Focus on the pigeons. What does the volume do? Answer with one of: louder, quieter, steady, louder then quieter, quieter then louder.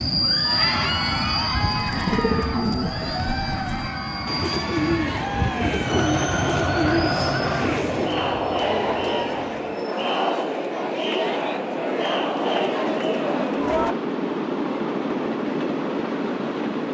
quieter then louder.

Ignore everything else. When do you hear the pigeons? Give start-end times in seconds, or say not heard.
1.4-8.2.